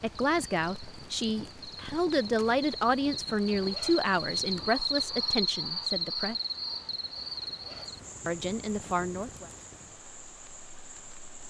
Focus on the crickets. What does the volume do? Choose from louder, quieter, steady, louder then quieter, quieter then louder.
louder then quieter.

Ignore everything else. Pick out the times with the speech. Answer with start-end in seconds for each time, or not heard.
0.0-6.3, 8.2-9.5.